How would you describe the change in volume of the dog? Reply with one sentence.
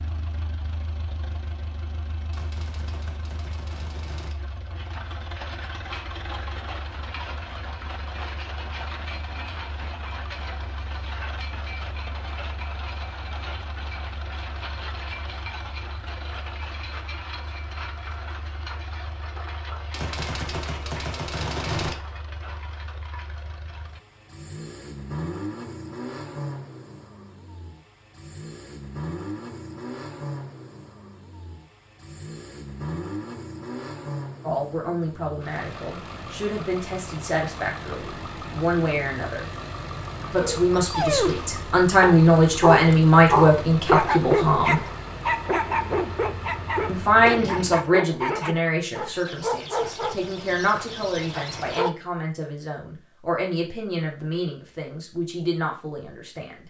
The loudness of the dog goes down.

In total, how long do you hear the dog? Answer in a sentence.
You can hear the dog for 12 seconds altogether.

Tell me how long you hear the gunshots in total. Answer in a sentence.
You can hear the gunshots for 6 seconds altogether.